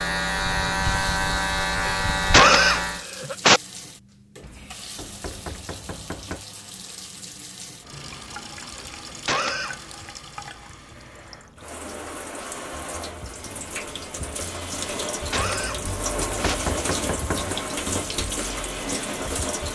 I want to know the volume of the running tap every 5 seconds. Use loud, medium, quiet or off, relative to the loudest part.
quiet, medium, medium, loud.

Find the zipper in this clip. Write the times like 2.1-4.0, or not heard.
not heard.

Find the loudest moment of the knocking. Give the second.
17 s.